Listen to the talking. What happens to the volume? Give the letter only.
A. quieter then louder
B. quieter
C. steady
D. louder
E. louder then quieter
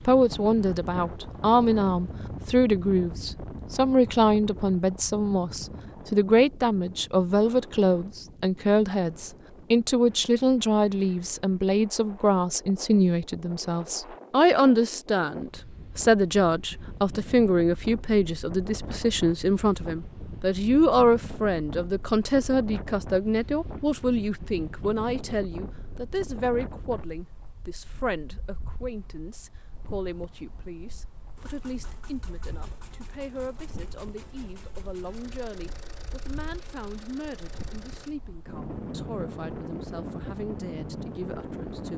B.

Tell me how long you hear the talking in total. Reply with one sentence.
The talking can be heard for 42 seconds in total.